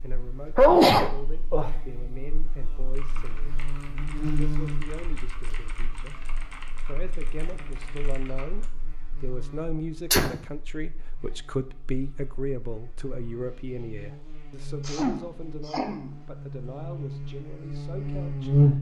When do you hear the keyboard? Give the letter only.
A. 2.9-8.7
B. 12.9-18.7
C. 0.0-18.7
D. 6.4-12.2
A.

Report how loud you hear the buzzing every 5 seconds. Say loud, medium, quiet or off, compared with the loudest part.
medium, quiet, quiet, loud.